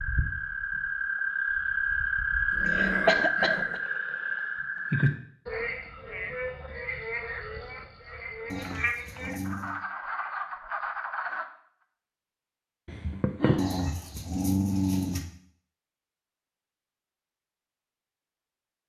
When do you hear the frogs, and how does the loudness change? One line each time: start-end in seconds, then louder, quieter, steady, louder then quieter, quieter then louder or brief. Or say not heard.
0.0-11.4 quieter.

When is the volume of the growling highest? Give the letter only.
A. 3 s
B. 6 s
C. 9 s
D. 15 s
D.